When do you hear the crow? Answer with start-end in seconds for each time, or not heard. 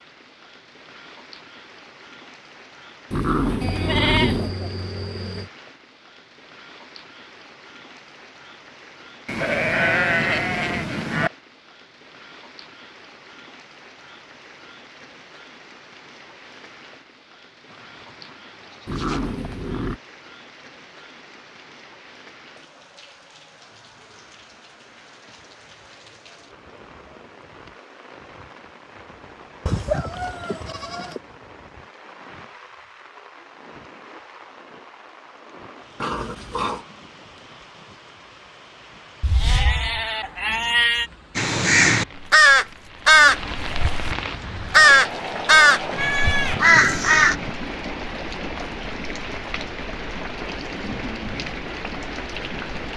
41.4-47.4.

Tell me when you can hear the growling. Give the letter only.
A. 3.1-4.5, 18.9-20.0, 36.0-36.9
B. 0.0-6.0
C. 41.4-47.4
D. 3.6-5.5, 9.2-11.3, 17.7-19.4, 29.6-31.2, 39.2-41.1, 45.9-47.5
A.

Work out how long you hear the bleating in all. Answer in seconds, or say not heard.
11 s.